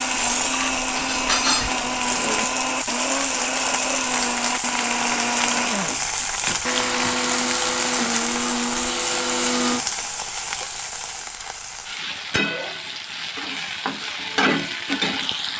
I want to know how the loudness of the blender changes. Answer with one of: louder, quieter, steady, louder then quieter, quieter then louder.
steady.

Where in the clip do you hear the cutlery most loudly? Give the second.
1 s.